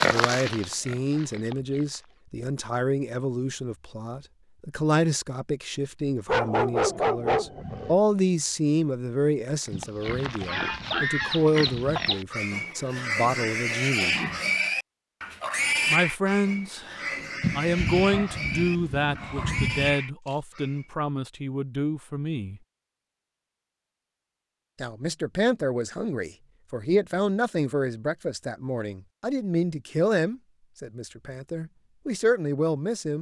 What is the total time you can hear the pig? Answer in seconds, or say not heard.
13 s.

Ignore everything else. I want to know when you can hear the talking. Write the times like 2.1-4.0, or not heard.
0.0-14.2, 15.8-22.6, 24.8-33.1.